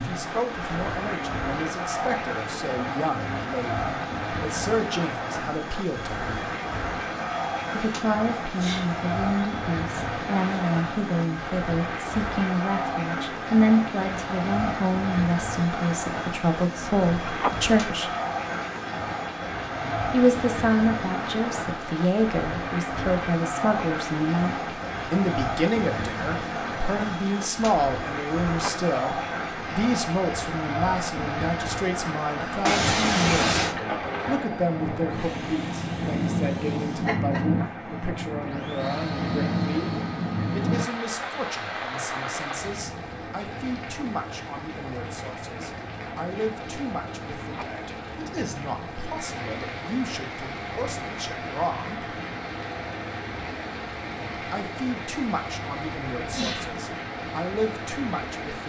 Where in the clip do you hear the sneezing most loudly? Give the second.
33 s.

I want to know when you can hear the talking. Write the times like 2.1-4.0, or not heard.
0.0-6.3, 7.7-18.1, 20.1-52.0, 54.4-58.6.